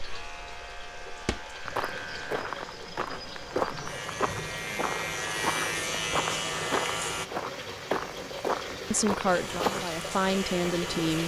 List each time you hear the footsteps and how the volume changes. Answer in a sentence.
The footsteps can be heard from 1.2 to 9.8 s, at a steady volume.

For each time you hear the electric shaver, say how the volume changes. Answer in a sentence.
The electric shaver can be heard from 0.0 to 7.2 s, getting louder; and briefly from 9.3 to 11.2 s.